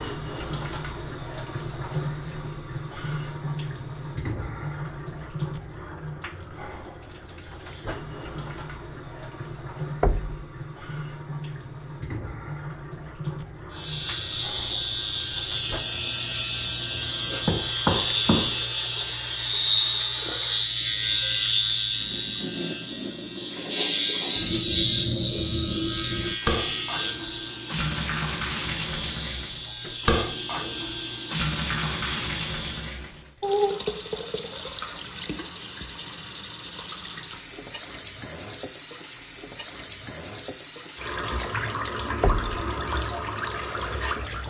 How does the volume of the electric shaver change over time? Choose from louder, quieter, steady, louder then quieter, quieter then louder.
quieter.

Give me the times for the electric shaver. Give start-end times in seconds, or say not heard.
13.7-33.0.